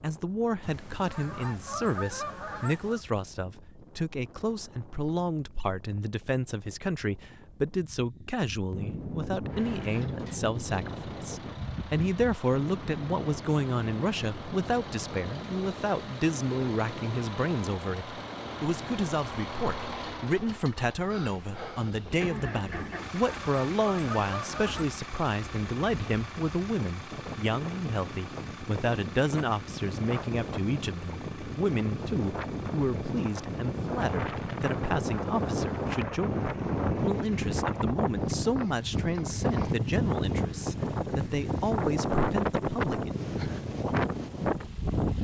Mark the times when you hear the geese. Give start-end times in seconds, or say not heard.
0.6-3.0, 22.8-24.9.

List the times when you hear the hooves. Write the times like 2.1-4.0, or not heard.
not heard.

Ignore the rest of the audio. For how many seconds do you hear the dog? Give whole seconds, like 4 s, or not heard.
not heard.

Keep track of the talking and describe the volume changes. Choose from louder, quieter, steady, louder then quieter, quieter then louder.
steady.